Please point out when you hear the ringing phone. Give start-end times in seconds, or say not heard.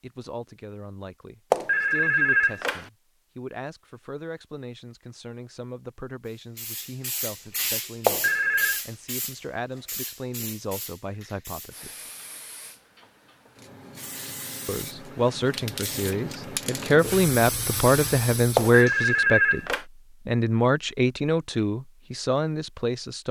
1.5-2.9, 8.1-8.8, 18.6-19.9.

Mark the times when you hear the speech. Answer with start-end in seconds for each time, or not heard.
0.0-11.9, 14.7-23.2.